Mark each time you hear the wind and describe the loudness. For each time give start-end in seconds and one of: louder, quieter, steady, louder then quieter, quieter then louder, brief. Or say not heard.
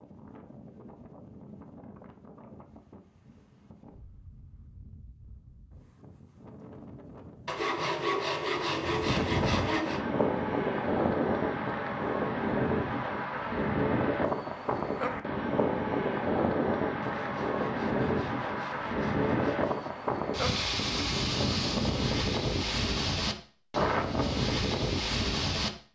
0.0-25.7 louder.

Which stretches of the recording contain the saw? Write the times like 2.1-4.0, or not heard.
7.5-10.1, 17.0-19.9.